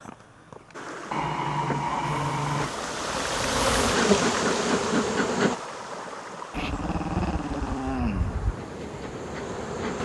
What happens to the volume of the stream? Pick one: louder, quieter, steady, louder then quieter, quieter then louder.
louder then quieter.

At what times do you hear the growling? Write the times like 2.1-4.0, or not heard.
1.1-2.7, 6.5-8.6.